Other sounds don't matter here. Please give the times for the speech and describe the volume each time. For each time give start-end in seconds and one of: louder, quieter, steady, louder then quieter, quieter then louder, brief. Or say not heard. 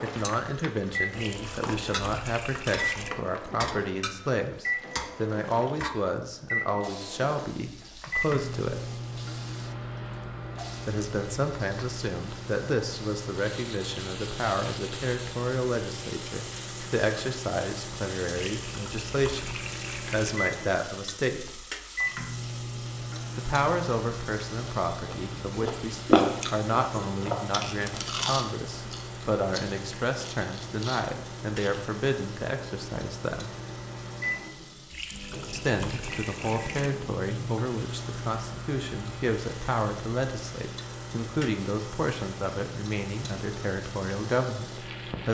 0.0-8.8 steady
10.8-21.6 steady
23.4-33.5 steady
35.5-45.2 steady.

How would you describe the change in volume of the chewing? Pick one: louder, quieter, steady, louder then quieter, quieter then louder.
quieter.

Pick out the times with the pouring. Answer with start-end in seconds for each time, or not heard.
1.1-3.1, 18.3-20.3, 34.9-36.9.